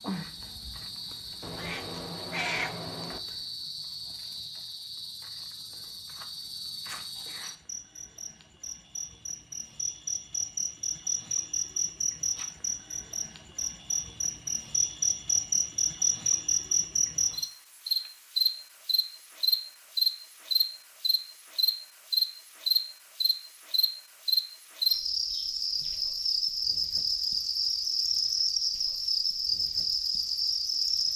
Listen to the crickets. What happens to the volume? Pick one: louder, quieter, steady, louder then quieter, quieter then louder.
louder.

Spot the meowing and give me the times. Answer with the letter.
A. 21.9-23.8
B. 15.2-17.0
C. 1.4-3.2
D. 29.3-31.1
C.